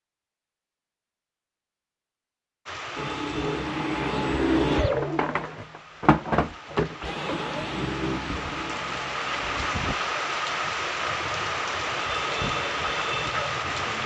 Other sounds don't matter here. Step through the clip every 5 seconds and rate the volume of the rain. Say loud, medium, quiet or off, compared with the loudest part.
medium, medium, loud.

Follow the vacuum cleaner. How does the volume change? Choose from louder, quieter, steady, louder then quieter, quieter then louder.
quieter.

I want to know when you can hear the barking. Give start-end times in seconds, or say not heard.
not heard.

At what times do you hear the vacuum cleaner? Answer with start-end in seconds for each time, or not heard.
3.0-14.0.